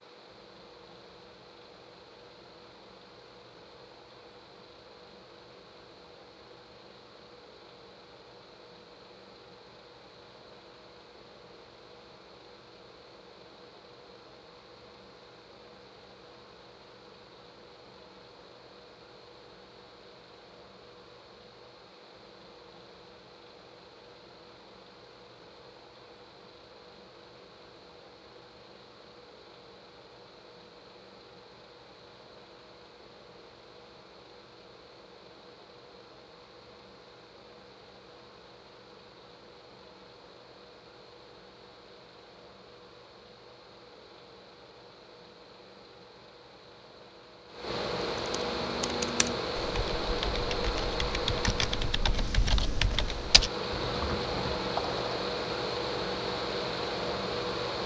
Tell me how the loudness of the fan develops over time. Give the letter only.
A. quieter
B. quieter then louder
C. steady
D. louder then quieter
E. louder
E.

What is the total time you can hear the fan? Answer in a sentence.
The fan can be heard for 58 seconds in total.